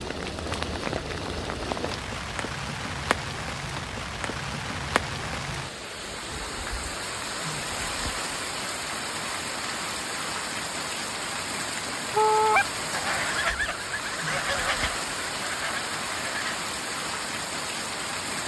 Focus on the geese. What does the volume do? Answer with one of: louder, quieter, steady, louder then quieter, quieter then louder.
quieter.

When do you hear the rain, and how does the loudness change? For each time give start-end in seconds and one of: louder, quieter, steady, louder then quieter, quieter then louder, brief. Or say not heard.
0.0-18.4 steady.